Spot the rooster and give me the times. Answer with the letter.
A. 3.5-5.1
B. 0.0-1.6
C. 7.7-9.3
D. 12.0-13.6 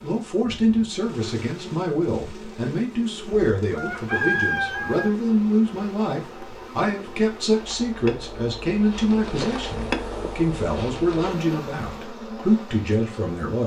A.